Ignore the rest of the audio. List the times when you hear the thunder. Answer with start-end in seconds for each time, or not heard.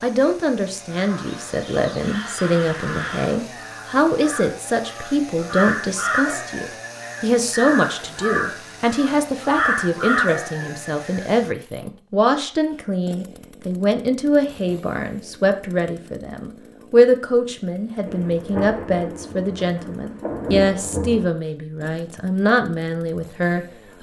18.1-21.3.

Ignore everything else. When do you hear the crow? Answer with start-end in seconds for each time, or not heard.
0.8-11.4.